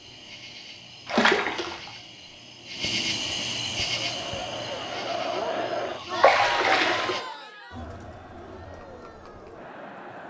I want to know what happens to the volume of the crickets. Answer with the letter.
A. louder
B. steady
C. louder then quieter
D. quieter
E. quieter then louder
C.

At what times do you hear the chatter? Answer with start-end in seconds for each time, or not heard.
3.7-10.2.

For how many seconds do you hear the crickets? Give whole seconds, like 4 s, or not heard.
7 s.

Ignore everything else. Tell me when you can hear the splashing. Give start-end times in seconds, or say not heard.
1.1-1.9, 6.2-7.2.